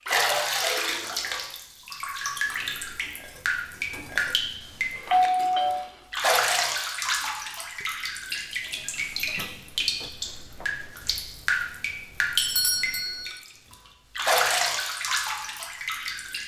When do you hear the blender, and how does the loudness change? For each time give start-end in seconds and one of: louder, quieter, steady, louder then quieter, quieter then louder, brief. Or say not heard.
not heard.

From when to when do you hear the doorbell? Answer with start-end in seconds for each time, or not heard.
5.0-5.9, 12.3-13.3.